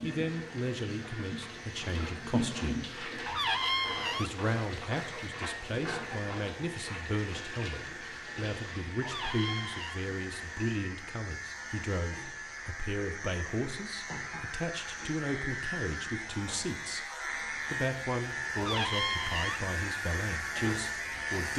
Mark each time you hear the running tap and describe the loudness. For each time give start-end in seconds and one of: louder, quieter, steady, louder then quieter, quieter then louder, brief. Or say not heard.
0.0-10.8 quieter.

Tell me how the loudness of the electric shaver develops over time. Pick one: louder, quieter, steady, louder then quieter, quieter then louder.
louder.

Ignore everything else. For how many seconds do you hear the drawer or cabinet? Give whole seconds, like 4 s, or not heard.
3 s.